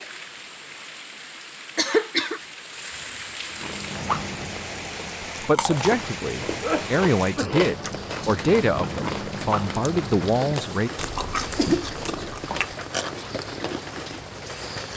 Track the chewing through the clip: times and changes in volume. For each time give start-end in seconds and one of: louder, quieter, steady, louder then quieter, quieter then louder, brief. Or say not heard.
3.5-14.2 steady.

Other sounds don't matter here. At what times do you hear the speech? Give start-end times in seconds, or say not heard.
5.4-10.9.